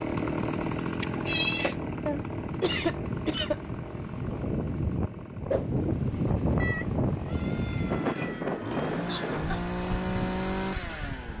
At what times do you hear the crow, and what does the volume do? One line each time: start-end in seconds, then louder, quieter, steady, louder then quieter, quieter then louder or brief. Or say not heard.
not heard.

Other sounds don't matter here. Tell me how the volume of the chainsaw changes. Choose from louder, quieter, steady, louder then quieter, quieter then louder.
quieter then louder.